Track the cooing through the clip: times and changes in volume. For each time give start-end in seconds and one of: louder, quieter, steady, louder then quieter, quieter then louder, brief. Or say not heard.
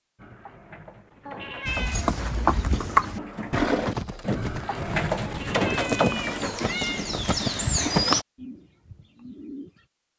0.1-9.8 louder then quieter.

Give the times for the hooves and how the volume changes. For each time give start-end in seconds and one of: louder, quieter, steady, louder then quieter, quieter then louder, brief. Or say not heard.
1.6-8.2 quieter then louder.